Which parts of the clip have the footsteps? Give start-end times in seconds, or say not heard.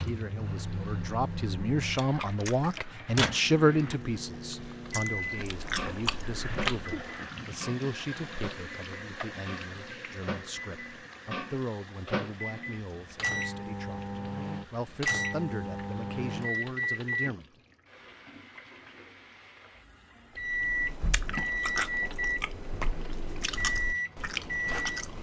not heard.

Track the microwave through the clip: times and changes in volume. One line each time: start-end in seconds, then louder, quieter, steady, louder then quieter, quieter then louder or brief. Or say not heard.
0.0-17.3 quieter then louder
20.4-25.1 quieter then louder.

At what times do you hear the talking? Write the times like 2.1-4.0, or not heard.
0.1-17.4.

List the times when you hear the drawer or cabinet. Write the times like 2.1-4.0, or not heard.
not heard.